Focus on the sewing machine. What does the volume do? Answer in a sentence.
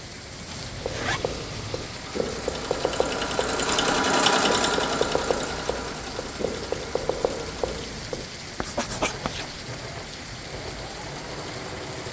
The volume of the sewing machine goes up, then down.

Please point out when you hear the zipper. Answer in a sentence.
The zipper can be heard from 0.5 to 1.2 s and from 9.2 to 9.7 s.